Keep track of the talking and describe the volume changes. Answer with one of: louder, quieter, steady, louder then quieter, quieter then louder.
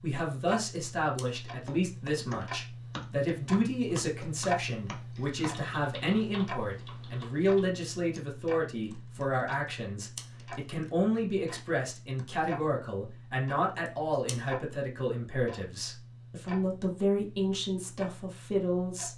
steady.